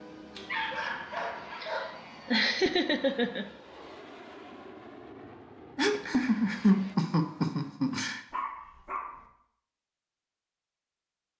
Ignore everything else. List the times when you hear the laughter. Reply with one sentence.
You can hear the laughter from 1.1 to 3.5 s and from 5.8 to 8.2 s.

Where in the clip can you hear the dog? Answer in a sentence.
You can hear the dog from 0.3 to 1.9 s and from 8.3 to 9.2 s.